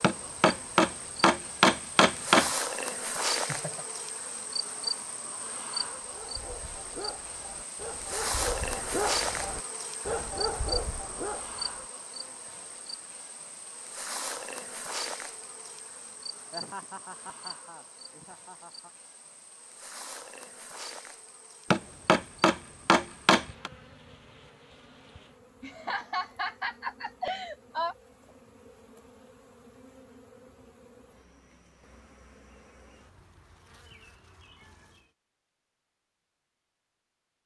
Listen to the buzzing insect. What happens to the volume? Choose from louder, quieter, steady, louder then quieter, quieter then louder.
quieter.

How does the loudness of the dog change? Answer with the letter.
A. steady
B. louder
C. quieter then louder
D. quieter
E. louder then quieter
B.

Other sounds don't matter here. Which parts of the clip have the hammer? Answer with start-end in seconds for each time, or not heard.
0.0-2.5, 21.7-23.7.